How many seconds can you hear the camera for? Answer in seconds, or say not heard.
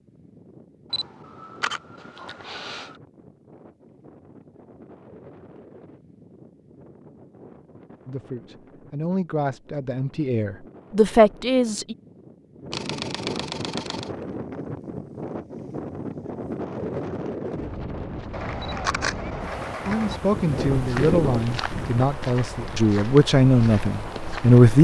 5 s.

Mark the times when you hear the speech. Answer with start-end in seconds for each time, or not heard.
8.1-11.9, 19.9-24.7.